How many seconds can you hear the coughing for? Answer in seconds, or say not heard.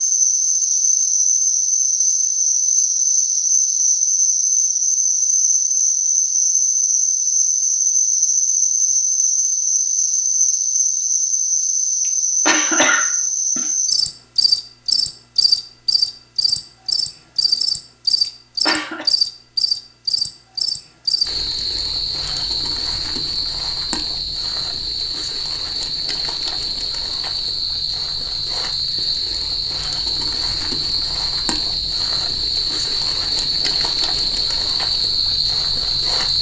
2 s.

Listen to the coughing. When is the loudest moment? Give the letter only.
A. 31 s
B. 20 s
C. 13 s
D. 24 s
C.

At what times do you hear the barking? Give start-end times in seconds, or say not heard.
not heard.